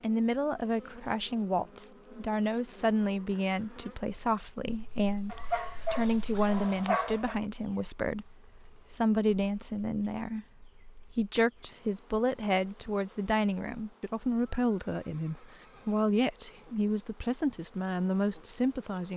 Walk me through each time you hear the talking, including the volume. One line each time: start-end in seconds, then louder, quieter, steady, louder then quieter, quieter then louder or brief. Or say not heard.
0.0-19.1 steady.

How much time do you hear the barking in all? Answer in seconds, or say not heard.
2 s.